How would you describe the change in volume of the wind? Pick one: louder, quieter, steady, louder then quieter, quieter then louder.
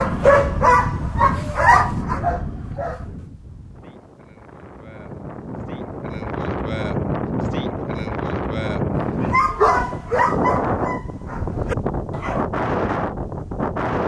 quieter then louder.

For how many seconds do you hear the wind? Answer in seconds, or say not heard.
14 s.